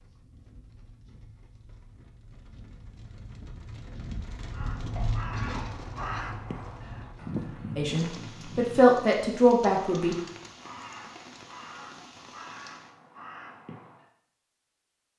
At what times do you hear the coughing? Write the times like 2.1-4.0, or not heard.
5.0-6.4.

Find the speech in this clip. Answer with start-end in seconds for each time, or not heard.
7.8-10.2.